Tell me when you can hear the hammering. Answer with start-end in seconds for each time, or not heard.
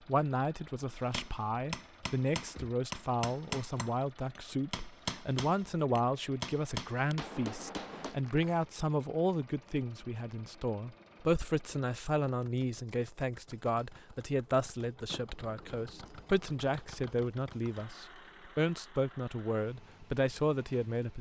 0.9-8.2.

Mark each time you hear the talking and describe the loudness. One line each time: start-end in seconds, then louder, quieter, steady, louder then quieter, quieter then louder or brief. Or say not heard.
0.1-21.1 steady.